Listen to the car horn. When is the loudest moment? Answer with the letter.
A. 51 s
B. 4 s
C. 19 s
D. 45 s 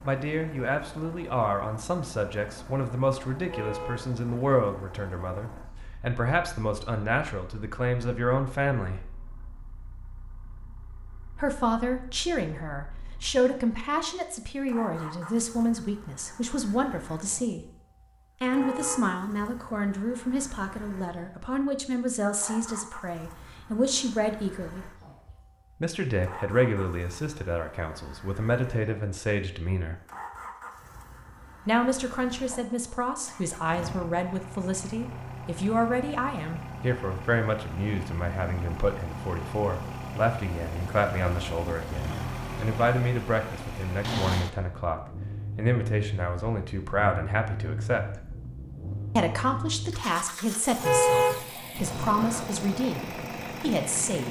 A.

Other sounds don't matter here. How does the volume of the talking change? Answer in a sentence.
The volume of the talking stays about the same.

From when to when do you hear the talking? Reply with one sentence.
You can hear the talking from 0.0 to 9.0 s, from 11.3 to 17.6 s, from 18.4 to 24.9 s, from 25.8 to 29.9 s, from 31.6 to 48.2 s and from 49.1 to 54.2 s.